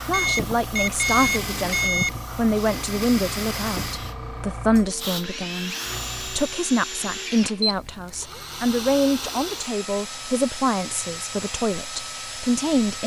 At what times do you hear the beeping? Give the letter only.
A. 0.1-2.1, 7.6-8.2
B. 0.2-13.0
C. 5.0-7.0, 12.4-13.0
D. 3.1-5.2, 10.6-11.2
A.